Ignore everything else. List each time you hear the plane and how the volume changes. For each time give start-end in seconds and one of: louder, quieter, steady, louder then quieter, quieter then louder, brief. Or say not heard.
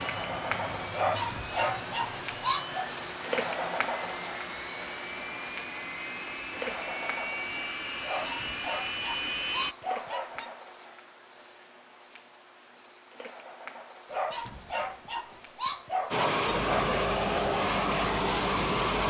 0.0-9.8 louder
16.1-19.0 brief.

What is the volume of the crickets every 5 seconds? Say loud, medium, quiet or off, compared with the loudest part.
loud, medium, quiet, quiet.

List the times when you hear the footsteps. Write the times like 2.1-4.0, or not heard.
not heard.